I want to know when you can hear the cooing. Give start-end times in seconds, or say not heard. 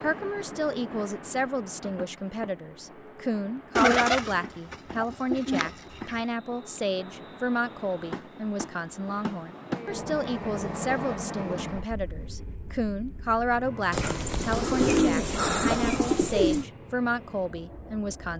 3.8-6.2, 13.9-16.6.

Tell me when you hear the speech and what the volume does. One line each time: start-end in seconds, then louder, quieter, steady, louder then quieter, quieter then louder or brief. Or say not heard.
0.0-18.3 steady.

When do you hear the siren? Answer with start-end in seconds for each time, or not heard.
not heard.